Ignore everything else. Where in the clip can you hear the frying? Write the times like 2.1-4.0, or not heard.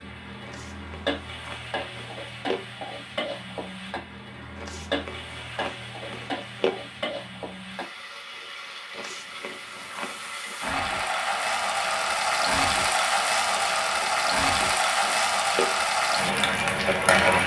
0.0-17.4.